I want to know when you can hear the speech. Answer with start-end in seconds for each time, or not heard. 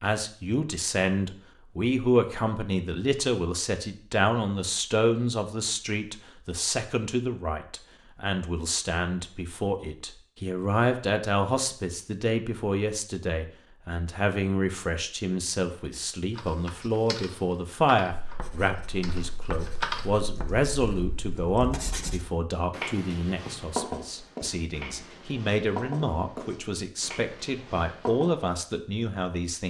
0.0-29.6.